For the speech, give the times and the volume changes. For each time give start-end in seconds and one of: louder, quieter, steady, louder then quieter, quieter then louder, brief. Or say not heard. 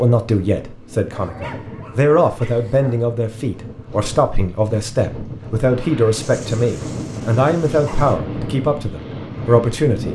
0.0-10.1 steady.